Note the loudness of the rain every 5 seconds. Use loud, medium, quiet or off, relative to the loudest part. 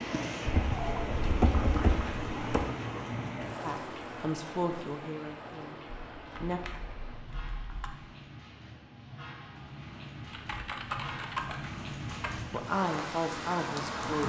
loud, medium, loud.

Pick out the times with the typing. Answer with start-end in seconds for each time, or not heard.
0.5-2.6, 5.9-7.9, 10.2-12.6.